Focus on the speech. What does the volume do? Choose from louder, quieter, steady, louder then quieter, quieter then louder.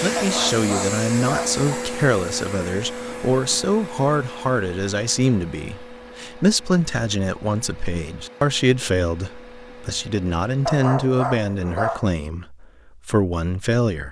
steady.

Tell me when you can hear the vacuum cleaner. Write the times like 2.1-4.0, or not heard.
0.0-10.8.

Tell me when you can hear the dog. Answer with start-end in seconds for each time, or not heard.
0.1-1.9, 10.7-12.1.